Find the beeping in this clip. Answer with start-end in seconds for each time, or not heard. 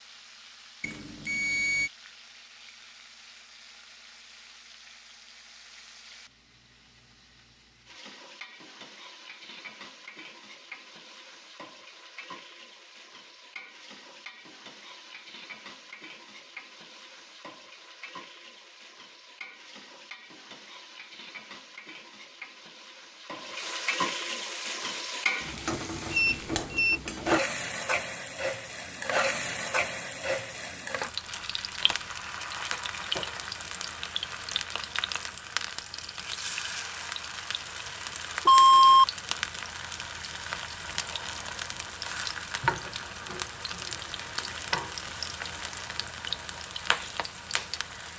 0.8-1.9, 26.1-27.0, 38.5-39.0.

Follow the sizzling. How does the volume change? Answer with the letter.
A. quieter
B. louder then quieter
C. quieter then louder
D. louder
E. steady
D.